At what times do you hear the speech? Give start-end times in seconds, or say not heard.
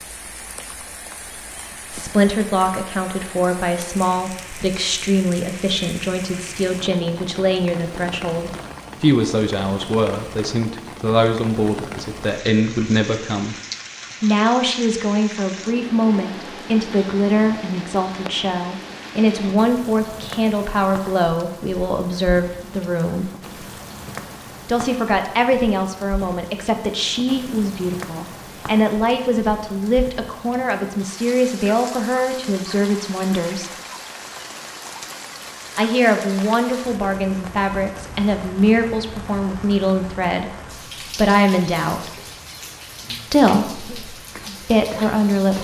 1.9-13.6, 14.2-23.3, 24.6-33.7, 35.8-40.5, 41.1-42.1, 43.3-45.5.